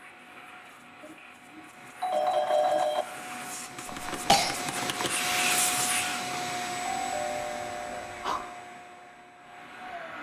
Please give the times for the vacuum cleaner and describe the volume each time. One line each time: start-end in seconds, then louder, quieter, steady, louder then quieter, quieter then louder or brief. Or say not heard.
0.0-10.1 louder then quieter.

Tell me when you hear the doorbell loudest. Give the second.
3 s.